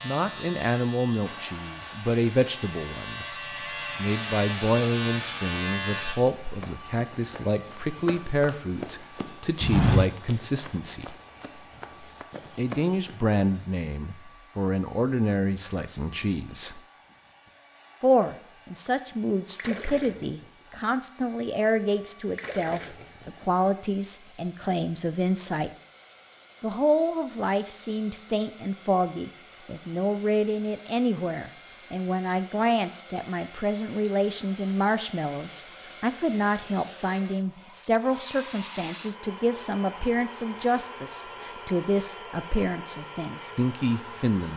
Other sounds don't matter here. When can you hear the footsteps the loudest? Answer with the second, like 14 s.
10 s.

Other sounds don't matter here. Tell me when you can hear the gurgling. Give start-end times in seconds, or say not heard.
19.6-20.6, 22.3-23.3.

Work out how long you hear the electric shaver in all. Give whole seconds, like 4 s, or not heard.
6 s.